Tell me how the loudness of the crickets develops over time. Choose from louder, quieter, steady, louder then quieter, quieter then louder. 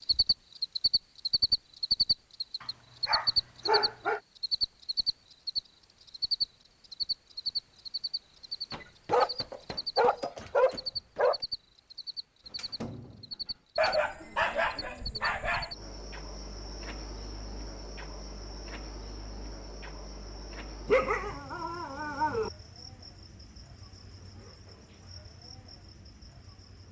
quieter.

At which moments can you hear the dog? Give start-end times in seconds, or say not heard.
2.6-4.2, 8.7-11.3, 13.8-15.8, 20.9-22.5.